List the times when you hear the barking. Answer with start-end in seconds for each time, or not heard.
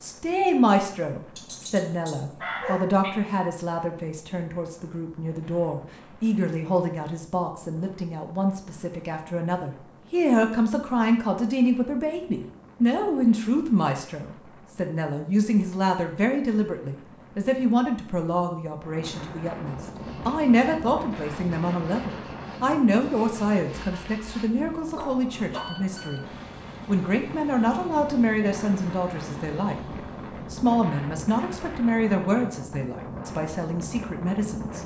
1.4-3.1, 24.6-25.7.